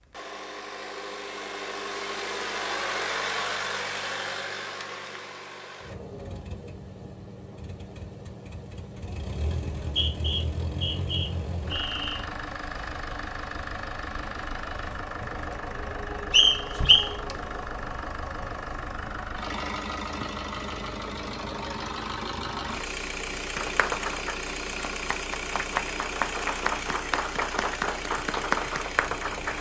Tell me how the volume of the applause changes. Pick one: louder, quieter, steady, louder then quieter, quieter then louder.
louder.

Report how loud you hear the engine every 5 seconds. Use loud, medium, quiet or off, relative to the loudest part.
loud, medium, loud, loud, loud, loud.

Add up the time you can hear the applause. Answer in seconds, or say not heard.
6 s.